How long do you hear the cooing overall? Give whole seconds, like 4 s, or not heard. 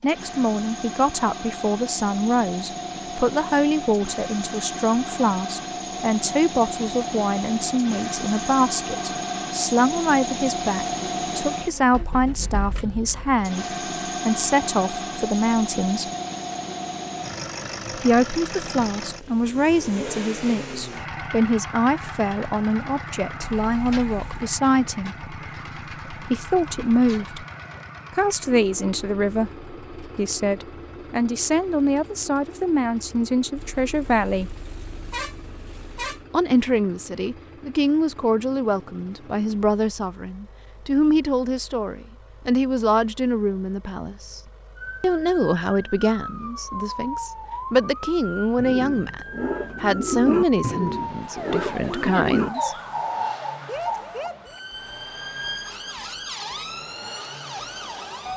6 s.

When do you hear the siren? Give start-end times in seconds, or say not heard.
44.8-58.3.